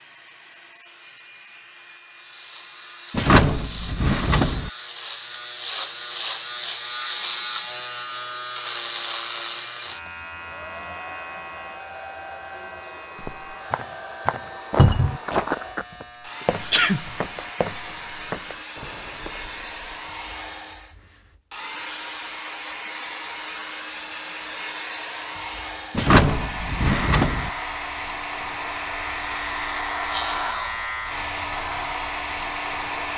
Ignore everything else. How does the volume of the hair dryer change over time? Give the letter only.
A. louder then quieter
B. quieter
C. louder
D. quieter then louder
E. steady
C.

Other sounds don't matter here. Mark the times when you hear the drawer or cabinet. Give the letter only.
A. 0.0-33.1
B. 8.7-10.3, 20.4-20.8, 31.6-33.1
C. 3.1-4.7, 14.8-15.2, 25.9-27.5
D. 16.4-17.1
C.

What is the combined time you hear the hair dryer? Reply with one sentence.
You can hear the hair dryer for 33 seconds altogether.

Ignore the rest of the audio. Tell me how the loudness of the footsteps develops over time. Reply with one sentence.
The loudness of the footsteps goes down.